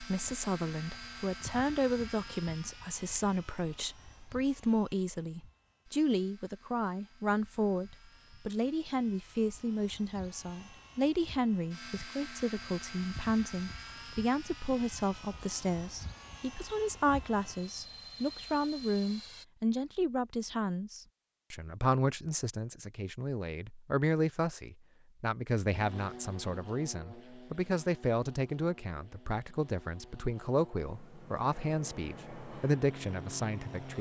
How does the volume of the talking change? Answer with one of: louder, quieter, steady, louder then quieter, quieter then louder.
steady.